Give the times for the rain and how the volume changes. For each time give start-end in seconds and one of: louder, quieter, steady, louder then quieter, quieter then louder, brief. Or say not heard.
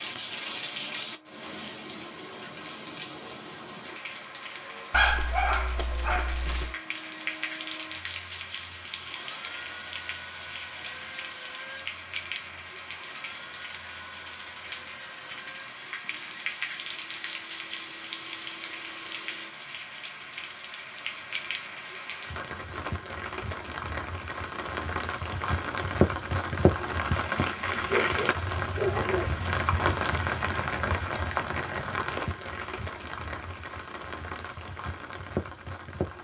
0.0-36.1 louder.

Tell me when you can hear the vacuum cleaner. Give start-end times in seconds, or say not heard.
0.2-19.6.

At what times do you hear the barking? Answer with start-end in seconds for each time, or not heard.
4.9-6.8, 27.6-29.3.